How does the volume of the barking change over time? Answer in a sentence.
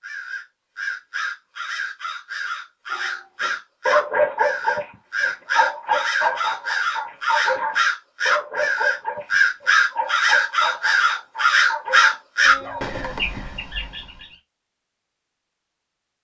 The volume of the barking goes down.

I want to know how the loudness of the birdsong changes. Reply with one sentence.
The volume of the birdsong goes up.